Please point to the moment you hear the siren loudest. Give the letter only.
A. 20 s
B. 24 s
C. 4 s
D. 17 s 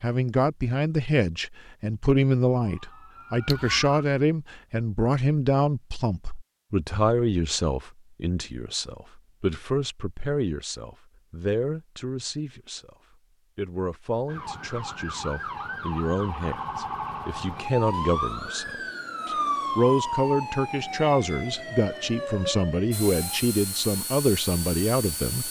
A.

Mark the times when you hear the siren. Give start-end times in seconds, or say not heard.
2.5-4.0, 14.2-23.4.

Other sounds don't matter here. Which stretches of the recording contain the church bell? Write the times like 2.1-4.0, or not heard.
not heard.